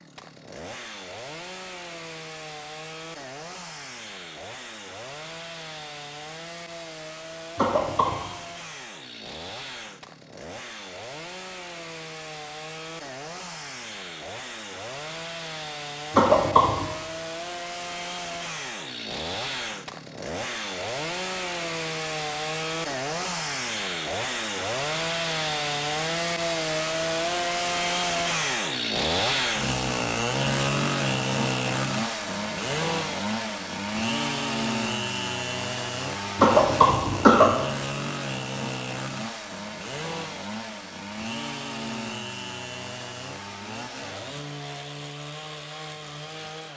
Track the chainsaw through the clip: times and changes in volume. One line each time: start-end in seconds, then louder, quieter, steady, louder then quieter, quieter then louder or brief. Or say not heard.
0.0-46.7 louder then quieter.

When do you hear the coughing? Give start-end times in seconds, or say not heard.
7.5-8.3, 16.1-16.9, 36.4-37.5.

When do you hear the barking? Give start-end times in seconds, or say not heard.
not heard.